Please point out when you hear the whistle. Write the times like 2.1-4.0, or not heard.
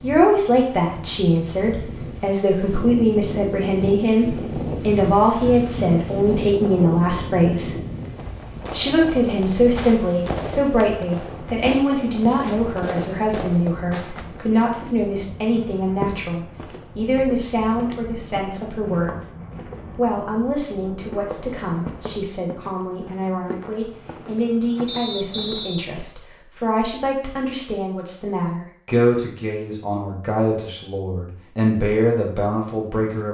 24.9-25.9.